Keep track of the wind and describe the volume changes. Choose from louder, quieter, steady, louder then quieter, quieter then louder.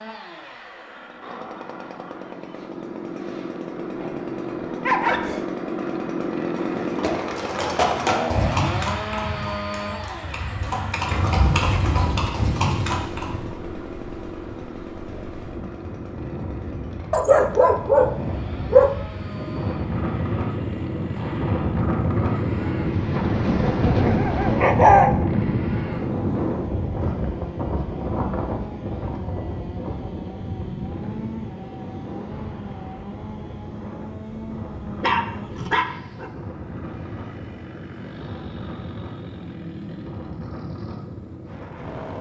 louder then quieter.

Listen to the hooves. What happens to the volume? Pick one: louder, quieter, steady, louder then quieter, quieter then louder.
quieter then louder.